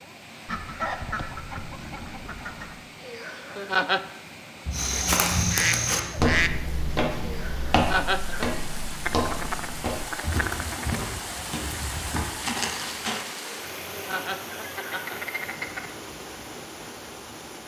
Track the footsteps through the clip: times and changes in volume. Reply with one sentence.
The footsteps can be heard from 4.7 to 13.2 s, getting quieter.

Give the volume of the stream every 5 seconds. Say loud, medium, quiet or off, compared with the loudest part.
medium, loud, loud, loud.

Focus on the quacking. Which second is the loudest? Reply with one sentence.
The loudest moment of the quacking is at 6 seconds.